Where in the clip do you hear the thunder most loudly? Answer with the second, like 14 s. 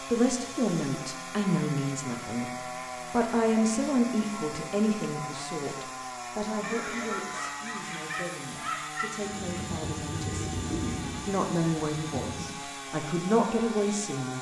11 s.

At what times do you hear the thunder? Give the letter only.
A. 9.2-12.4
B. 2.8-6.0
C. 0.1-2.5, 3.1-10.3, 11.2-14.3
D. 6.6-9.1
A.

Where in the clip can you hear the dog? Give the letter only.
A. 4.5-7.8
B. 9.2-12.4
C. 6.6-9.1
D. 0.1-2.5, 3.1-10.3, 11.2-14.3
C.